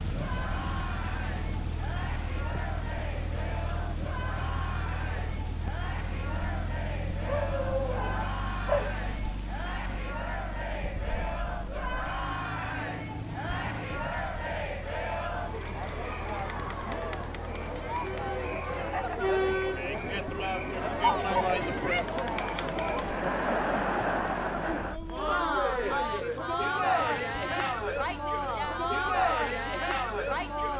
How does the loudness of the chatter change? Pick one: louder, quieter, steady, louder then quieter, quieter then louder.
louder.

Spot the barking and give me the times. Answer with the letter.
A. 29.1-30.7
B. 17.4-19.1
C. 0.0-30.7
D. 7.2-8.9
D.